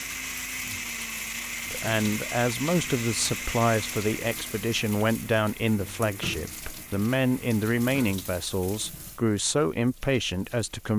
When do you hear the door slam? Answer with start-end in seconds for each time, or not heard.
not heard.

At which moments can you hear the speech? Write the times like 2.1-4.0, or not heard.
1.6-10.9.